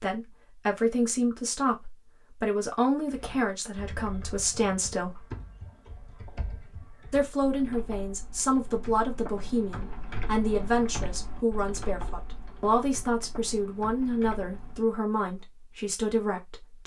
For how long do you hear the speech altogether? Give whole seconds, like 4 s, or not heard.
15 s.